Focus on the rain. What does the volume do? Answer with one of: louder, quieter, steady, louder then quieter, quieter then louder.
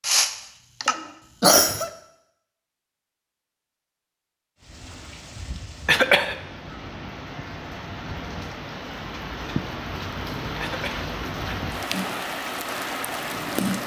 louder.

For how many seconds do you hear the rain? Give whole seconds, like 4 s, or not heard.
9 s.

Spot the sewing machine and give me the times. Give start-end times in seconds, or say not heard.
11.8-13.8.